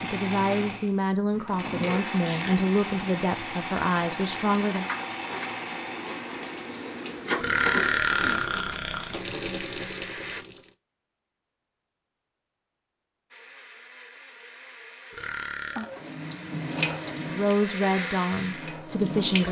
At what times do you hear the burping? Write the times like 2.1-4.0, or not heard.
1.3-2.6, 7.3-9.2, 15.1-15.9.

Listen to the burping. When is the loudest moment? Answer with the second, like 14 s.
8 s.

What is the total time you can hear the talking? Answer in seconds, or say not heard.
7 s.